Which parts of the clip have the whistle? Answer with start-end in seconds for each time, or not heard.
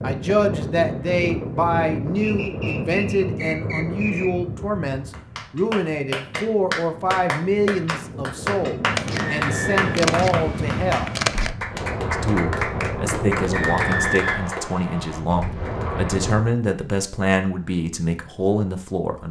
2.2-4.3, 9.3-9.9, 13.5-15.2.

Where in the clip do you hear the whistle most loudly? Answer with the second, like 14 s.
14 s.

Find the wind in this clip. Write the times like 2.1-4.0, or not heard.
0.0-16.5.